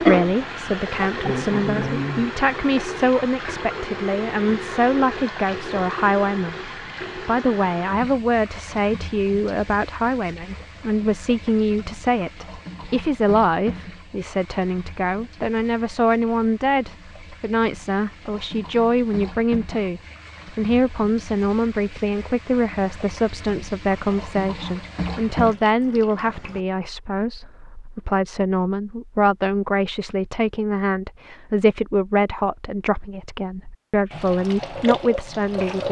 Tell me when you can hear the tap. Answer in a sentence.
The tap can be heard from 0.0 to 26.6 s and from 34.1 to 35.8 s.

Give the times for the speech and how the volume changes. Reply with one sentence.
The speech can be heard from 0.0 to 35.8 s, at a steady volume.